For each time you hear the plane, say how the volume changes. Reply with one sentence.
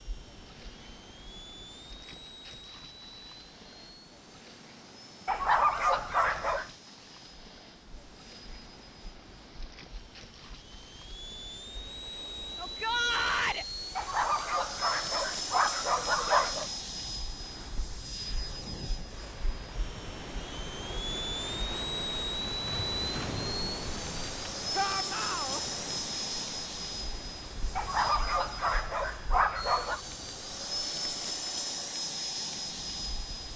The plane can be heard from 0.0 to 33.5 s, getting louder.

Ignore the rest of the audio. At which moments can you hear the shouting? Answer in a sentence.
You can hear the shouting from 12.6 to 13.7 s and from 24.8 to 25.6 s.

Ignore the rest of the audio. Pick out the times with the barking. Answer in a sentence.
You can hear the barking from 5.2 to 6.7 s, from 13.9 to 16.6 s and from 27.8 to 30.0 s.